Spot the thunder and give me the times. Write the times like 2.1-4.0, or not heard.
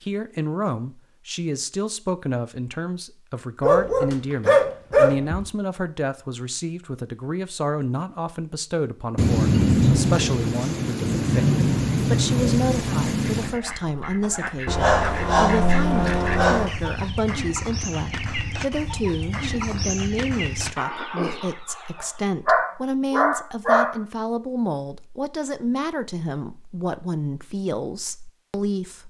9.2-13.6.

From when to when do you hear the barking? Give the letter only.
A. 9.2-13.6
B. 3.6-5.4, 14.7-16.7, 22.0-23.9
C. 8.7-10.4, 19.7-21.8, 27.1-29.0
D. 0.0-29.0
B.